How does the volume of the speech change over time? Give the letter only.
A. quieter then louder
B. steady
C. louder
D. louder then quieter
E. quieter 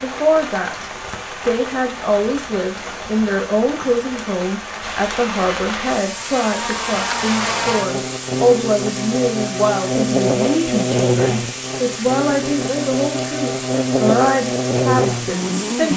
B.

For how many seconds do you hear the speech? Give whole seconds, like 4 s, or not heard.
16 s.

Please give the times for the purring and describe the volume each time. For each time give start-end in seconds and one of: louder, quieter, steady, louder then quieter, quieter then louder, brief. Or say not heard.
not heard.